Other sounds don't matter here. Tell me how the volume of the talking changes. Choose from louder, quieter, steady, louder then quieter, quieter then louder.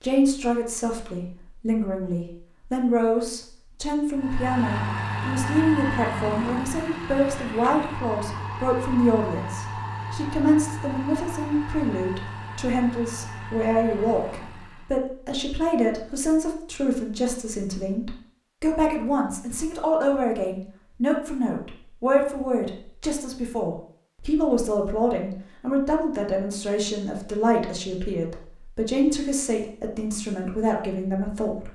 steady.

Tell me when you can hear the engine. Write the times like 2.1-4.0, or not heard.
4.2-15.1.